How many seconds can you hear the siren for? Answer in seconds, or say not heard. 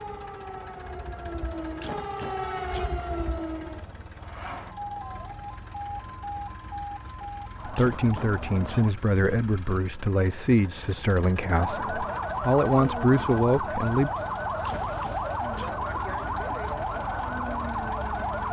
16 s.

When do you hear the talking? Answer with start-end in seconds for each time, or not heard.
7.7-14.1.